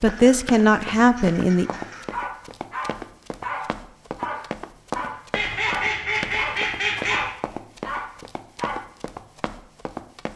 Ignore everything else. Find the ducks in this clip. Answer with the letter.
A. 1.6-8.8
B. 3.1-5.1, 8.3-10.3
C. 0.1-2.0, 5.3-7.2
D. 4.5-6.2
C.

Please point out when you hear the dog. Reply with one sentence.
You can hear the dog from 1.6 to 8.8 s.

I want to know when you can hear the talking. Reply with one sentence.
You can hear the talking from 0.0 to 1.7 s.